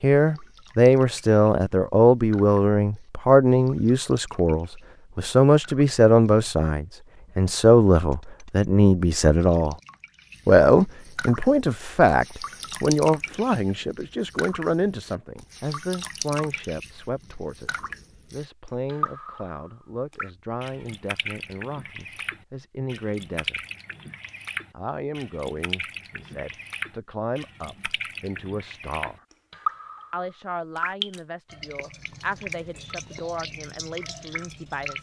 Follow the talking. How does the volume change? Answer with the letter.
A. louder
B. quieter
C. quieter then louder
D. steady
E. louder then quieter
B.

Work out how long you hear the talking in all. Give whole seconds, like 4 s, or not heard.
32 s.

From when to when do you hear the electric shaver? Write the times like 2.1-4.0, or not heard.
not heard.